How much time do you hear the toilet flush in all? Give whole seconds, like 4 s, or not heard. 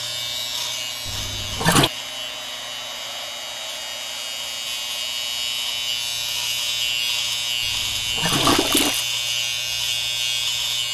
2 s.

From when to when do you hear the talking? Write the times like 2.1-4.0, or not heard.
not heard.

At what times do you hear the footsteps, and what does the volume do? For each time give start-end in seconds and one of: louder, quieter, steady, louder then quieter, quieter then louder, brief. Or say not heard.
not heard.